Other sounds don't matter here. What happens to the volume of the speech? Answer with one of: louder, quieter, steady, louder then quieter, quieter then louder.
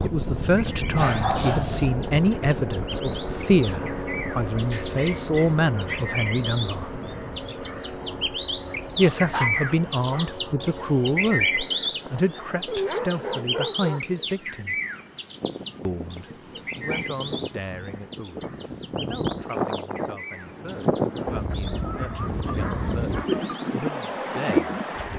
quieter.